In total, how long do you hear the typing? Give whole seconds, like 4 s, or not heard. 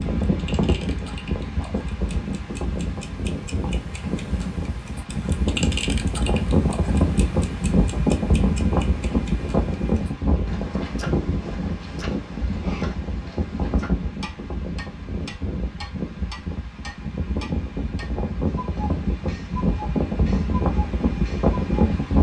not heard.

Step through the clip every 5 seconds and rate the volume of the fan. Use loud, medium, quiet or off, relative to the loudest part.
medium, loud, medium, medium, loud.